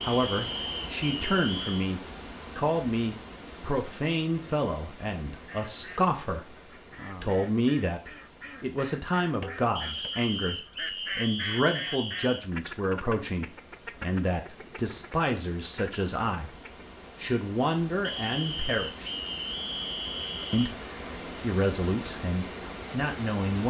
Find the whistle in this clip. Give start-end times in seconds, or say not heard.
0.0-1.9, 9.8-12.4, 18.0-20.8.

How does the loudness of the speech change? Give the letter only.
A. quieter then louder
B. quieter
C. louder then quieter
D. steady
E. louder
D.